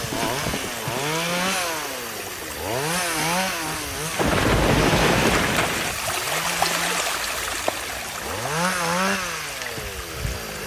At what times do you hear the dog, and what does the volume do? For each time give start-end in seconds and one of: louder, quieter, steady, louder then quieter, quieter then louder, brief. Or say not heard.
not heard.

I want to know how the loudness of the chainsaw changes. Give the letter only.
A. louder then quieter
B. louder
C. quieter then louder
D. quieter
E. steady
C.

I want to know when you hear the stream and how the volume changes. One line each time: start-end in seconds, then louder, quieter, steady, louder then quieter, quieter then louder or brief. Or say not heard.
0.0-10.6 louder then quieter.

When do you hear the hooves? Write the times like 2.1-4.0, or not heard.
0.0-1.6.